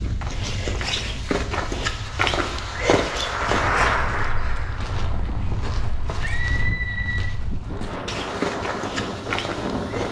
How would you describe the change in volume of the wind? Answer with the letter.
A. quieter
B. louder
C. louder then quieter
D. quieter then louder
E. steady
B.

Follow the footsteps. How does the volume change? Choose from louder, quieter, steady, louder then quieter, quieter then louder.
quieter then louder.